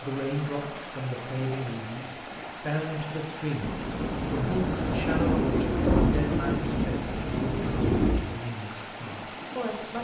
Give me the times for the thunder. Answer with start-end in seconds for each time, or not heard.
3.6-8.2.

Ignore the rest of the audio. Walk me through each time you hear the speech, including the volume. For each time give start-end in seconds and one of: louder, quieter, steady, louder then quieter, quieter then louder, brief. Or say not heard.
0.0-9.9 quieter.